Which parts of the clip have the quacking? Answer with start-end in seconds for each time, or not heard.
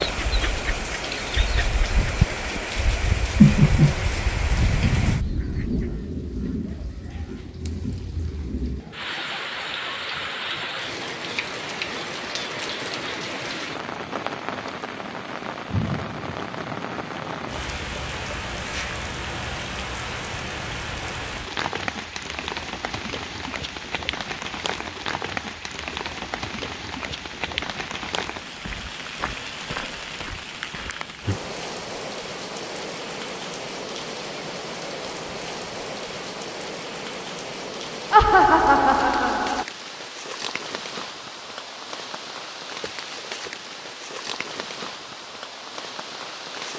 0.0-6.0.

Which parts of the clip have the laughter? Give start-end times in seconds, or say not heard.
3.4-4.0, 38.1-39.6.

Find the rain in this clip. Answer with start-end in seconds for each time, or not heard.
0.0-46.7.